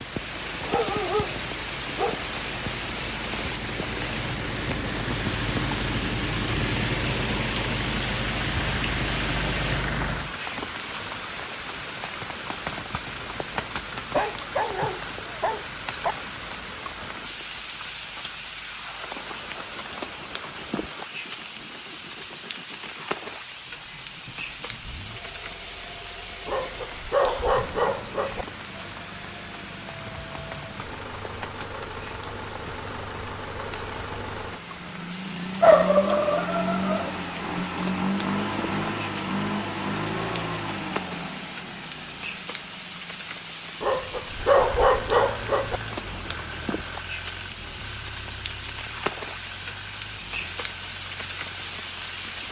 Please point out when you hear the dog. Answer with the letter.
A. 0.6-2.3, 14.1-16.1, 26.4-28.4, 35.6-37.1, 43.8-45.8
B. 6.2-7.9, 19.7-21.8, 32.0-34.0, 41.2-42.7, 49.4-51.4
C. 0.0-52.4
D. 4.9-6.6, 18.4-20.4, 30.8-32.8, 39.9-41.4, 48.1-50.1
A.